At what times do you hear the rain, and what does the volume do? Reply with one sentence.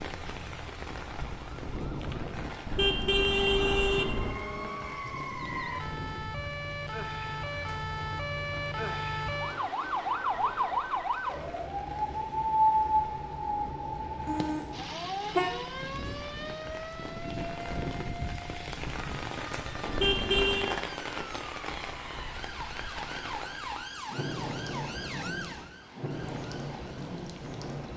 The rain can be heard from 0.0 to 27.9 s, getting quieter then louder.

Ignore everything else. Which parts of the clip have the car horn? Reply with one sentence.
The car horn can be heard from 2.6 to 4.3 s, from 14.2 to 15.6 s and from 19.9 to 20.8 s.